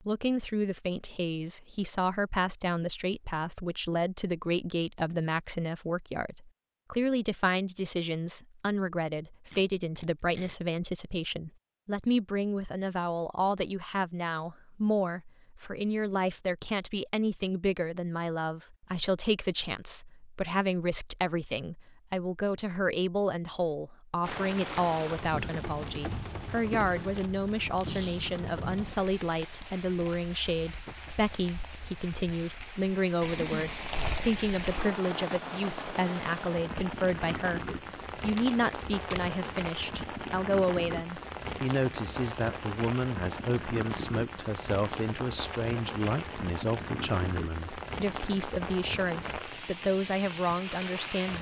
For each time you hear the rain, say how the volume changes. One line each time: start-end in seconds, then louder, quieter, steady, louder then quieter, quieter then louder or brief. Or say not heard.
24.2-51.3 steady.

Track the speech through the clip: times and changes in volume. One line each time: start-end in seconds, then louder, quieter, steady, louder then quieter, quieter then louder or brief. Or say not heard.
0.0-51.3 steady.